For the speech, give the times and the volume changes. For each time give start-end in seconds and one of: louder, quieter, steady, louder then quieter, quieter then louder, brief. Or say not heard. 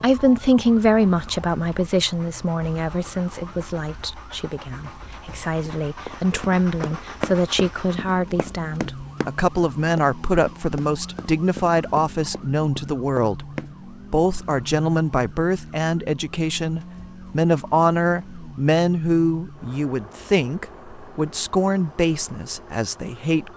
0.0-23.5 steady.